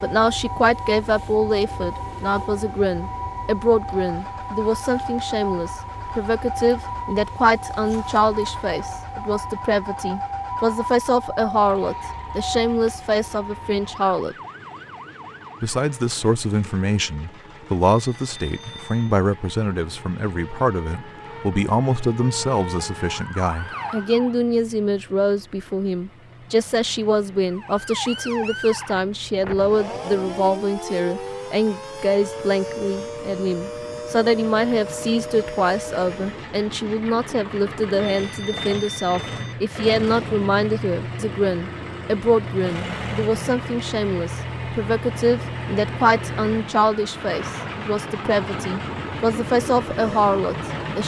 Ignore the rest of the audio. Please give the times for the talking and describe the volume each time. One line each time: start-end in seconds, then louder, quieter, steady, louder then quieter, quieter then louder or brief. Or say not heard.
0.0-14.3 steady
15.6-51.0 steady.